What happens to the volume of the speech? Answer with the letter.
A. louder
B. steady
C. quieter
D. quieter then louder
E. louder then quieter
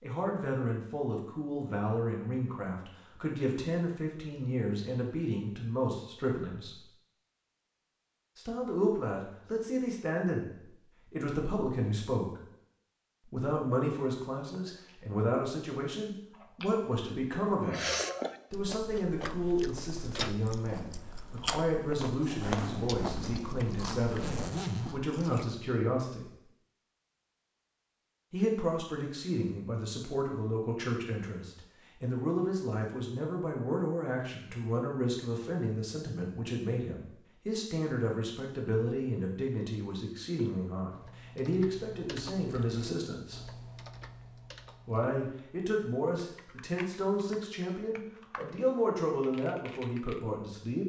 B.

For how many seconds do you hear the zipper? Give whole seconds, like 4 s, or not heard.
3 s.